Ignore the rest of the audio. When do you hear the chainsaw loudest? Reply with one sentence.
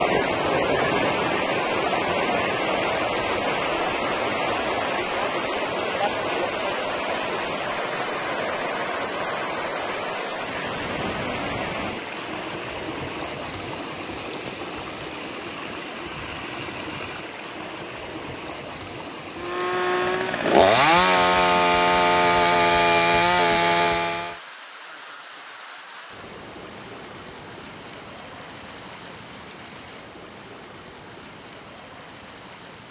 The loudest moment of the chainsaw is at 21 seconds.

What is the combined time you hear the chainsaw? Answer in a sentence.
You can hear the chainsaw for 5 seconds altogether.